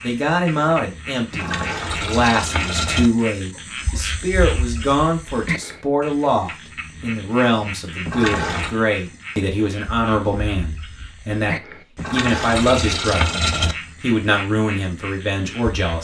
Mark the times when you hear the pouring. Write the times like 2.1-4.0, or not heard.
1.3-3.1, 8.1-8.8, 11.9-13.8.